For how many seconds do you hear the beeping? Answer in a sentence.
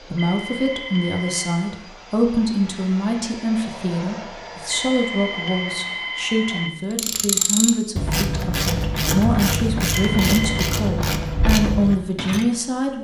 The beeping can be heard for 4 seconds in total.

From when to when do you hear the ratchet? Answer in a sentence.
You can hear the ratchet from 6.9 to 12.4 s.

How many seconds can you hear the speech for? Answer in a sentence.
The speech can be heard for 13 seconds in total.